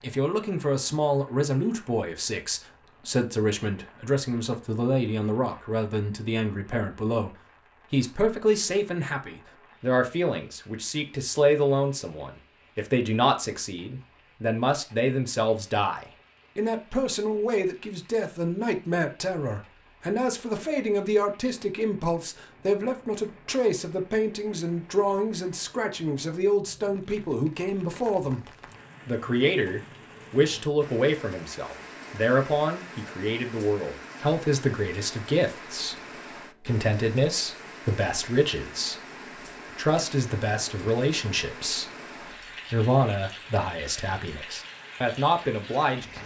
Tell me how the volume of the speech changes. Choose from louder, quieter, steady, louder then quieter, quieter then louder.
steady.